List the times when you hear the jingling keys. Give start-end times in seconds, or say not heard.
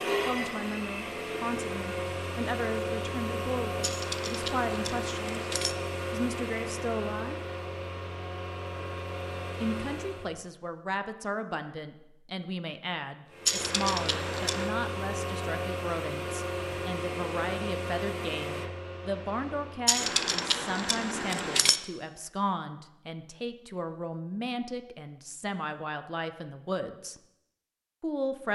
3.8-5.8, 13.4-14.7, 19.9-21.8.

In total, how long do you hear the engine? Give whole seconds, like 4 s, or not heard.
17 s.